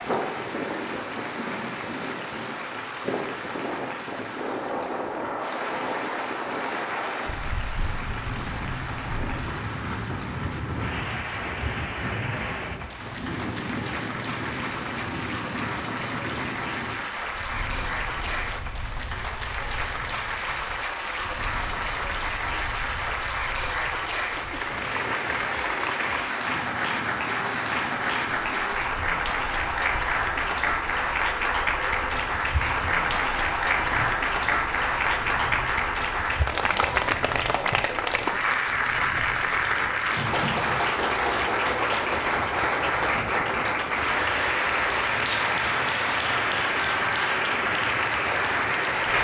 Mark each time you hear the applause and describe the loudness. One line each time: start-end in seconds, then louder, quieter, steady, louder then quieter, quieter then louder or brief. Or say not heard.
0.0-49.1 louder.